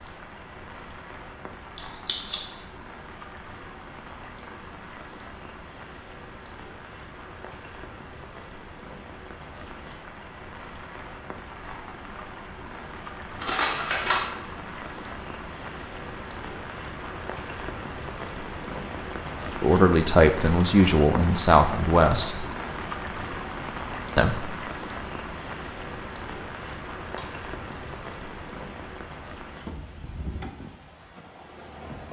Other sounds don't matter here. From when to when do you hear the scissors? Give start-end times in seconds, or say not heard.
1.8-2.5, 13.4-14.2, 26.6-27.9.